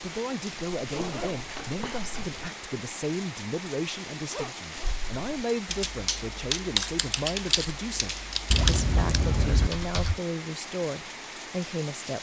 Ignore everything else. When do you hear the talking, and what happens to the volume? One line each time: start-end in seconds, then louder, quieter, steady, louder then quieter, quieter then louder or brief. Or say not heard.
0.0-12.1 steady.